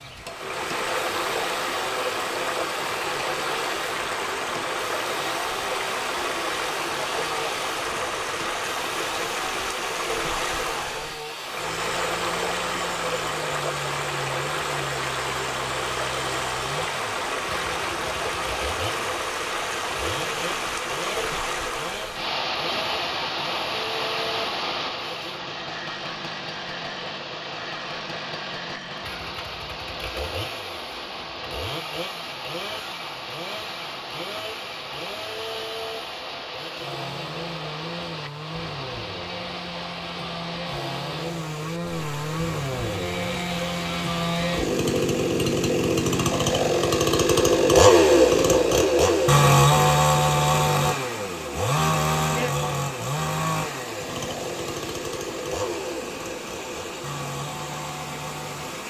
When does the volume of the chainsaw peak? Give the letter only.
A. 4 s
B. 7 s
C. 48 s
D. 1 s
C.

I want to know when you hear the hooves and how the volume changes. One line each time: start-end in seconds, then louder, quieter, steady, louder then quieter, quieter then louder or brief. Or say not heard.
not heard.